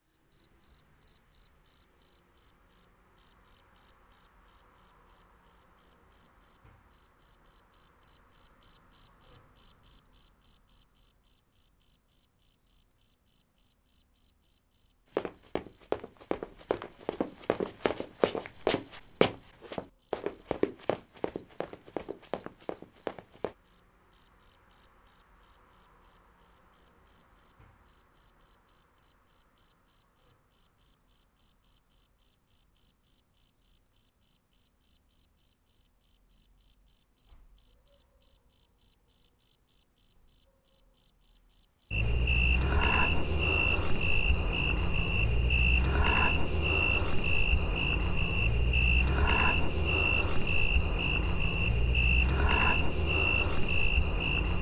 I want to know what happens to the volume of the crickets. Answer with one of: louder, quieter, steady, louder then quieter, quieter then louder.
quieter.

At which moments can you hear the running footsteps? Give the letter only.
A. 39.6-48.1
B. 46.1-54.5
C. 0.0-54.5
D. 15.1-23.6
D.